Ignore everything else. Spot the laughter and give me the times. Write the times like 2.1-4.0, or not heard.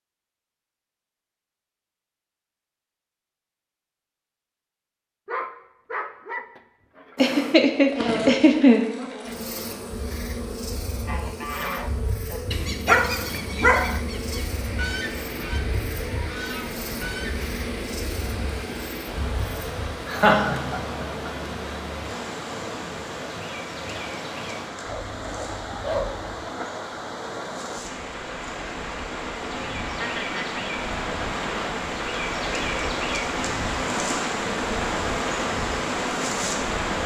7.2-8.8, 20.1-21.3, 29.9-30.6.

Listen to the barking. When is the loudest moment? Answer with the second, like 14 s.
13 s.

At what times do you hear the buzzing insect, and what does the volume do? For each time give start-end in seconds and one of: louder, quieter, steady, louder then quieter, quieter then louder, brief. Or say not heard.
7.2-37.0 quieter then louder.